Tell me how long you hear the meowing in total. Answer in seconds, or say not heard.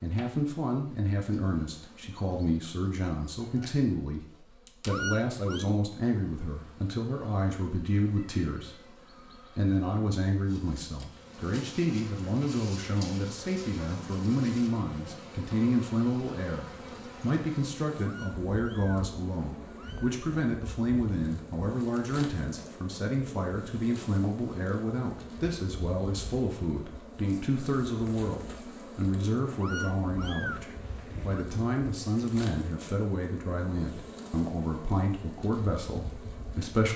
5 s.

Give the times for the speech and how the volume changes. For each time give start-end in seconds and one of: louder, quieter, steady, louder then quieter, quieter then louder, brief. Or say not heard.
0.0-8.9 steady
9.6-36.9 steady.